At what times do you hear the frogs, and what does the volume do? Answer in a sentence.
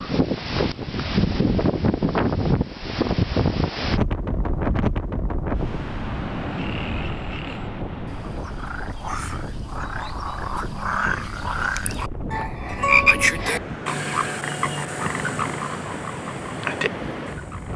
The frogs can be heard from 6.3 to 17.7 s, getting louder then quieter.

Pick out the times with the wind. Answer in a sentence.
You can hear the wind from 0.0 to 17.7 s.